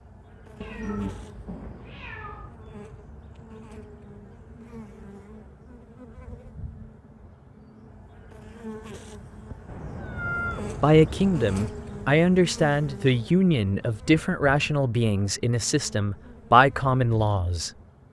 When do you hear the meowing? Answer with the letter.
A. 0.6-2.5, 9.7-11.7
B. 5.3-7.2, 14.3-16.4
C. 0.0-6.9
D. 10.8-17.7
A.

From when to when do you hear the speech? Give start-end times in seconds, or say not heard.
10.8-17.7.